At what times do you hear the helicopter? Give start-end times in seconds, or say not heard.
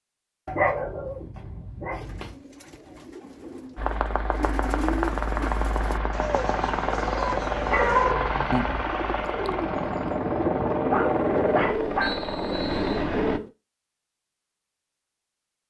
3.8-13.4.